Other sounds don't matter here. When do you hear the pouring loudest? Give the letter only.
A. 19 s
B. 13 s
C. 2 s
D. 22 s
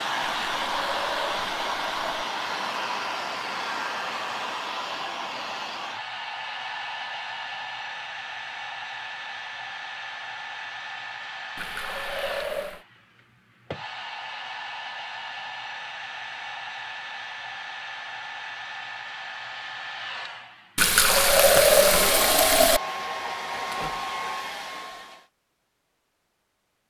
D.